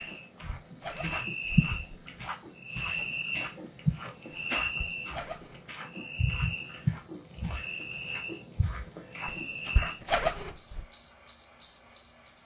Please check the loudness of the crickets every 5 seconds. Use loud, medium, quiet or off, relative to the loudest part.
medium, medium, loud.